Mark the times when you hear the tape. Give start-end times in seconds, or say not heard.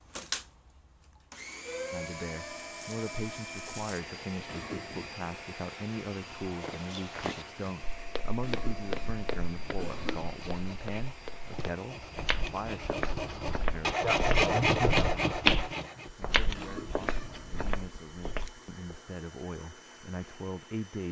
not heard.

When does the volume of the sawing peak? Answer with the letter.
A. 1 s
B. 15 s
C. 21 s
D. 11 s
B.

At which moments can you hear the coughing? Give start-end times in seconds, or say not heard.
4.5-5.2, 8.4-10.3, 16.6-17.6.